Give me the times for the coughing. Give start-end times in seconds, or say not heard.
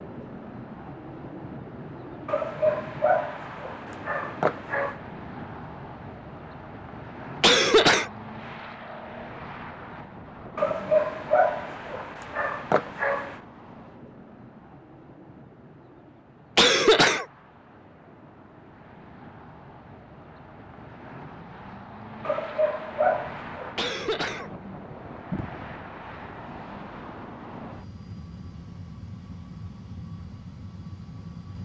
7.4-8.1, 16.6-17.2, 23.8-25.8.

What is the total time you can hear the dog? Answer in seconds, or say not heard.
7 s.